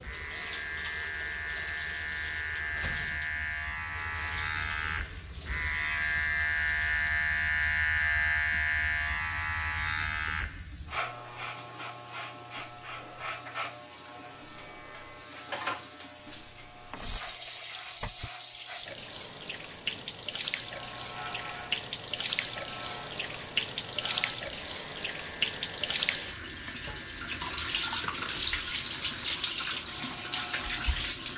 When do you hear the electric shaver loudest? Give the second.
8 s.